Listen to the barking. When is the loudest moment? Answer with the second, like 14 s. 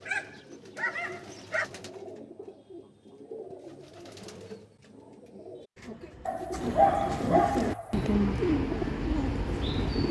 7 s.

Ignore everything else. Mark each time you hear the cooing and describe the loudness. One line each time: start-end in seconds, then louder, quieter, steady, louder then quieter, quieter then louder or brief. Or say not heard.
0.0-10.0 louder.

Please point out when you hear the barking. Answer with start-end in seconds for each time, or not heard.
0.1-1.7, 6.2-8.1.